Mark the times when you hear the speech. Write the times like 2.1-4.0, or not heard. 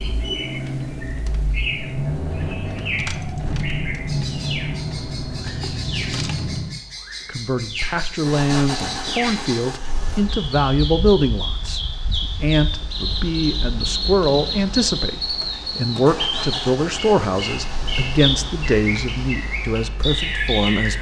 7.2-20.9.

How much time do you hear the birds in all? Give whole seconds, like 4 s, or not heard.
21 s.